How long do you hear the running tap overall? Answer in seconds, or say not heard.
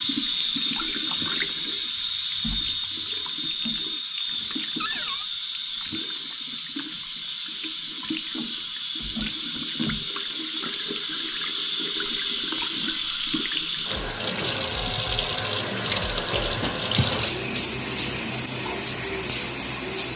20 s.